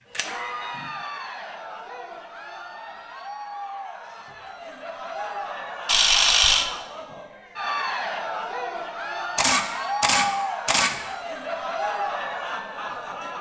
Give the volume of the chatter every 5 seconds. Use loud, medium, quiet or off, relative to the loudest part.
medium, loud, loud.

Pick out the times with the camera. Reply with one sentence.
The camera can be heard from 0.1 to 0.9 s, from 5.8 to 6.7 s and from 9.3 to 10.9 s.